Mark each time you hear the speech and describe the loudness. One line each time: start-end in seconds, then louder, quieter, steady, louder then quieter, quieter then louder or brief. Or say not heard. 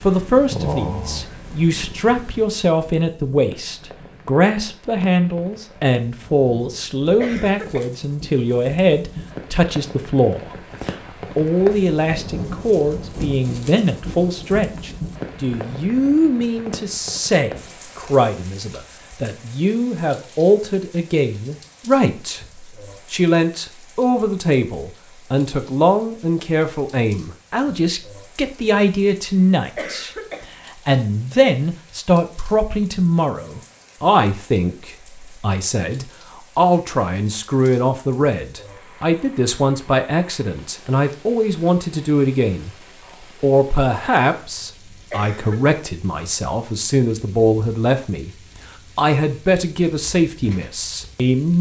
0.0-42.7 steady
43.4-48.3 quieter then louder
49.0-51.5 brief.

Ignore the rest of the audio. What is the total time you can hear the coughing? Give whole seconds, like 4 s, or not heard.
2 s.